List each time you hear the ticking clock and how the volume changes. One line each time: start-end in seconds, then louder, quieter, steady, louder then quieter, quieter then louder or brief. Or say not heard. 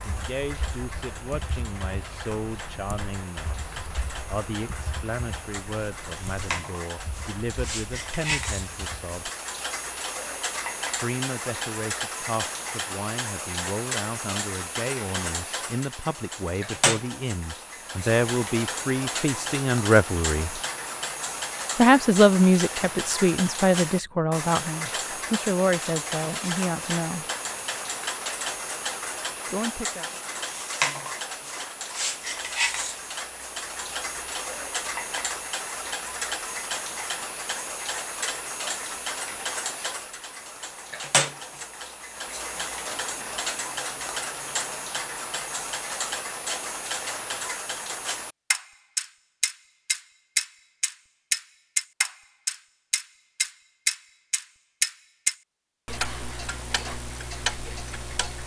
0.0-58.4 louder.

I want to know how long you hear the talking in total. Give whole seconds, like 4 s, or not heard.
25 s.